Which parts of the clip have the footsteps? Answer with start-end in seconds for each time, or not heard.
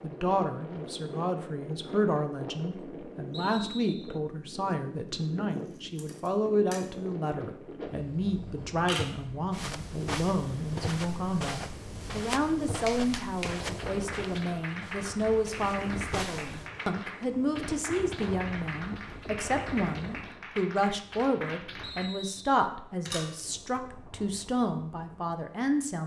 9.5-16.7.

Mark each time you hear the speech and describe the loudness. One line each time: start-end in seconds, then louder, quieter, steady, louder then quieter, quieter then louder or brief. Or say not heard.
0.0-26.0 steady.